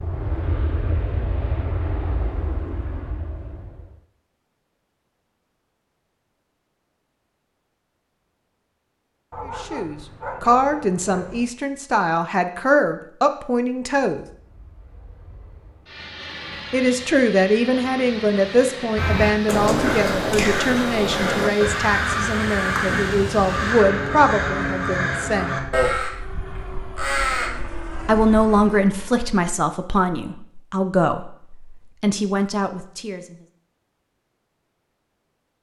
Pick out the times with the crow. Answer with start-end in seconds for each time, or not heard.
18.9-27.5.